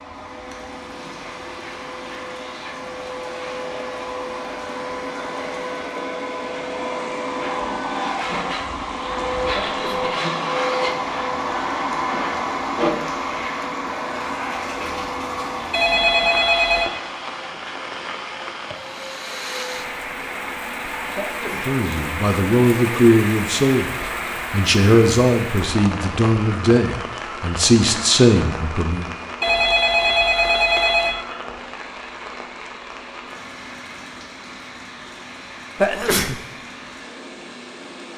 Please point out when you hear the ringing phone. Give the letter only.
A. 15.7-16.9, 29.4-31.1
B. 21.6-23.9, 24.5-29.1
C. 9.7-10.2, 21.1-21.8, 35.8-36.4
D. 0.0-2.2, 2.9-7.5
A.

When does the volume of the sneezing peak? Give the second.
36 s.